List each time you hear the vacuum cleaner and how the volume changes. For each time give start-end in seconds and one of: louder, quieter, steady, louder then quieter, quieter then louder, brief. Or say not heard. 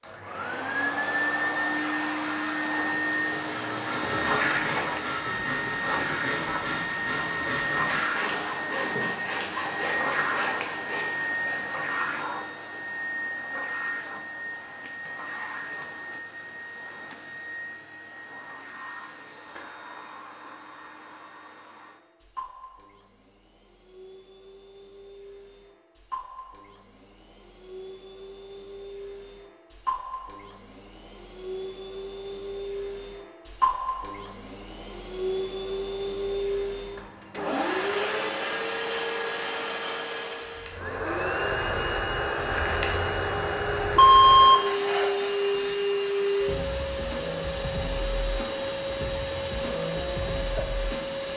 0.0-51.3 quieter then louder.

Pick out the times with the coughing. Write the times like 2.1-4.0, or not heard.
not heard.